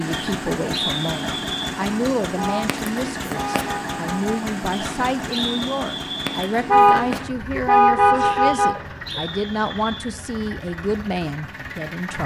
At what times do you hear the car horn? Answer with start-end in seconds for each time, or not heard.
2.4-4.5, 6.7-9.2.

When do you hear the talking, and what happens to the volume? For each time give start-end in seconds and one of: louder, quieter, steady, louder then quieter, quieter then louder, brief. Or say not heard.
0.0-12.2 steady.